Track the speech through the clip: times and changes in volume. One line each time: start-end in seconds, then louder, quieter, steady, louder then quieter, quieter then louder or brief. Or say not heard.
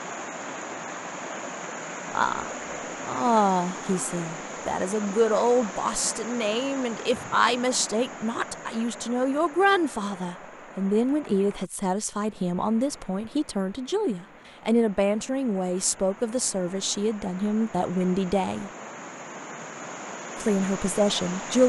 2.1-18.7 steady
20.4-21.6 brief.